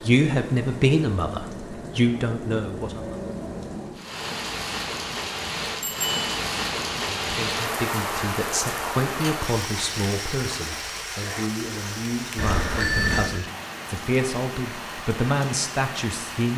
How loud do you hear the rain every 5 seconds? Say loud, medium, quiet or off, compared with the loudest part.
medium, loud, medium, medium.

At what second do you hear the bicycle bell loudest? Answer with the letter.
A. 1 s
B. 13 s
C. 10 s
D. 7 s
B.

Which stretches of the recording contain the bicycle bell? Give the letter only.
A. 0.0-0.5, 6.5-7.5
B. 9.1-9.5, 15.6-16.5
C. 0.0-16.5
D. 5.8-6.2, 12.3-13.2
D.